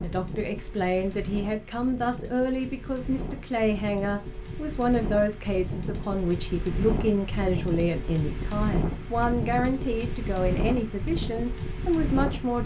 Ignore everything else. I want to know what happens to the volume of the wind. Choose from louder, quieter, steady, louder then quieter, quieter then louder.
louder.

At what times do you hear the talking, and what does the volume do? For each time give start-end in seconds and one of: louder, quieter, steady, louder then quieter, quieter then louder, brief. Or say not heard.
0.0-12.6 steady.